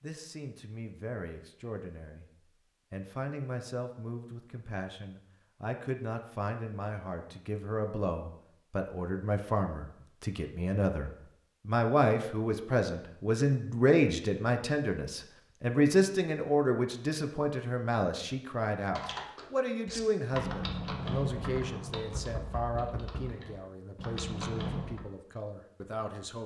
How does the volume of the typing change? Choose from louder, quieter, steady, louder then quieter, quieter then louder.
quieter then louder.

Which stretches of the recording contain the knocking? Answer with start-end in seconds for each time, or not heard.
22.1-23.4.